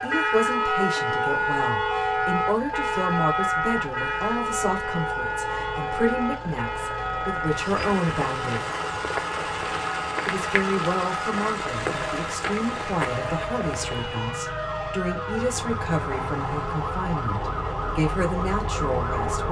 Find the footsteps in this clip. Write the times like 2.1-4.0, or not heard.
7.5-14.2.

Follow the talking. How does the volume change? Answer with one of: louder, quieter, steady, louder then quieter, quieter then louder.
steady.